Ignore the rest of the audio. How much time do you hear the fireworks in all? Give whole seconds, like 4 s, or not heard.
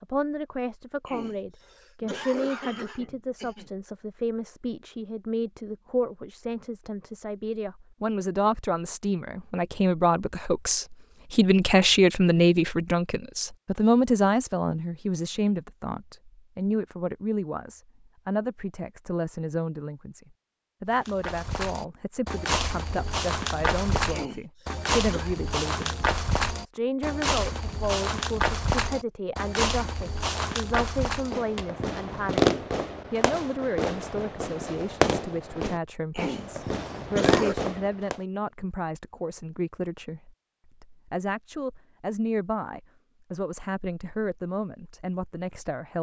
7 s.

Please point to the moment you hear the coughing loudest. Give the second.
37 s.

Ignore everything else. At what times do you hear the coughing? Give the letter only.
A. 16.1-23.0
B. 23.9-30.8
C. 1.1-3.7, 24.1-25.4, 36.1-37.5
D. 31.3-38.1
C.